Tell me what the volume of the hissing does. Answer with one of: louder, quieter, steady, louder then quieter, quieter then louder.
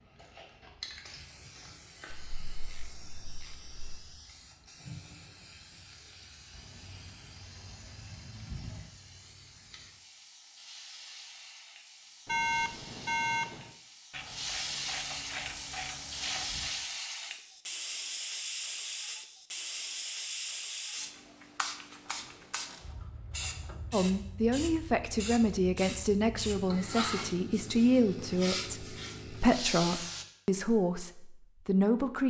louder.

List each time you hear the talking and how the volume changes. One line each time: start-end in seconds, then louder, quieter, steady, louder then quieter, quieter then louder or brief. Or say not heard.
23.9-32.2 steady.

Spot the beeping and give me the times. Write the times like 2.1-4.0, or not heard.
12.2-13.8.